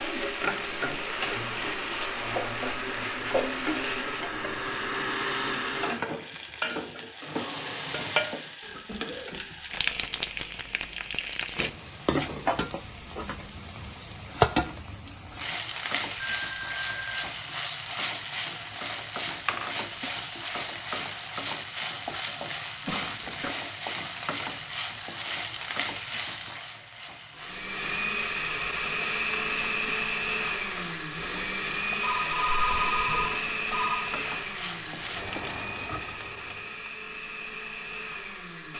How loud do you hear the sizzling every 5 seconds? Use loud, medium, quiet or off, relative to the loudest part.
loud, loud, loud, loud, loud, medium, medium, medium.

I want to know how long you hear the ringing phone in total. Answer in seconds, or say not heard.
3 s.